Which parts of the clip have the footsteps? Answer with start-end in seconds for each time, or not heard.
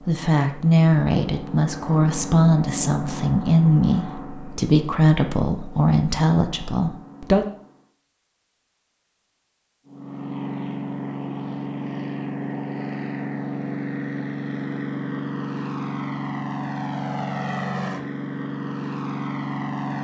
not heard.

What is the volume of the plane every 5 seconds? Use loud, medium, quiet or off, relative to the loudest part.
medium, quiet, loud, loud.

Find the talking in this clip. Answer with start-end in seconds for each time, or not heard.
0.0-7.5.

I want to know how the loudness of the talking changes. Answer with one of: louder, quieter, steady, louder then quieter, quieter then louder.
steady.